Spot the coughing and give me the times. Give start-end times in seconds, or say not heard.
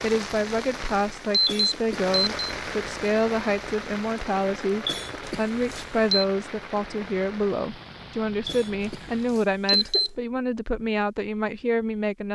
1.4-2.1, 4.8-5.8, 8.4-10.4.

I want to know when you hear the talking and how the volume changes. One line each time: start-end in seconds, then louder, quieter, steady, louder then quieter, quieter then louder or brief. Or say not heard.
0.0-12.3 steady.